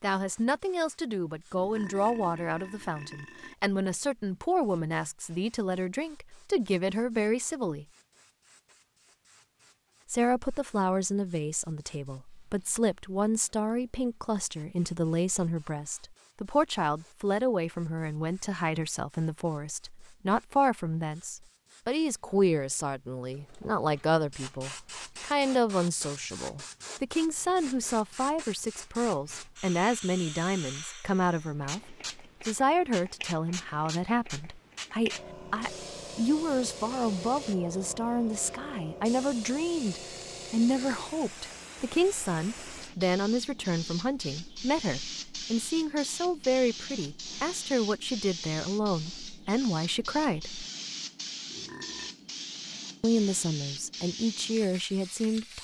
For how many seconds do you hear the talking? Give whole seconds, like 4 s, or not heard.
51 s.